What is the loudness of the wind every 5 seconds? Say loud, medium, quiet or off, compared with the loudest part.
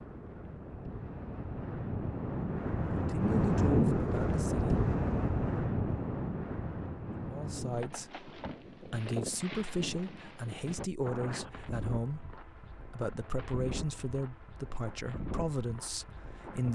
loud, medium, quiet, quiet.